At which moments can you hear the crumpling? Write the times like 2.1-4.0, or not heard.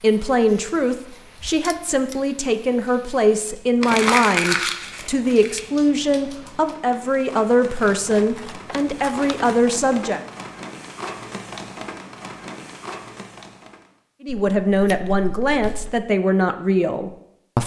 3.8-5.7.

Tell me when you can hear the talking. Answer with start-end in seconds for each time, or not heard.
0.0-10.2, 14.2-17.6.